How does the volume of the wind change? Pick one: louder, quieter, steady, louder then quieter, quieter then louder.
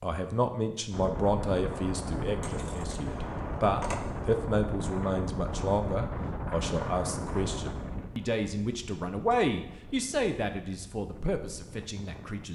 quieter.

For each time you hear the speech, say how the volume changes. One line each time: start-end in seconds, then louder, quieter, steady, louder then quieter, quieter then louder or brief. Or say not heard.
0.0-12.4 steady.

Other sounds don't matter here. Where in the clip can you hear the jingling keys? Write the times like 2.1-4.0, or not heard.
2.4-4.3.